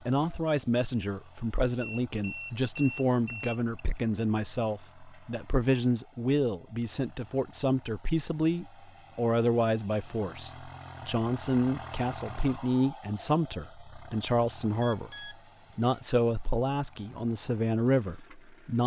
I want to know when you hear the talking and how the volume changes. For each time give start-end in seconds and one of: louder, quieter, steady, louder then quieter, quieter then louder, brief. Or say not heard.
0.1-18.8 steady.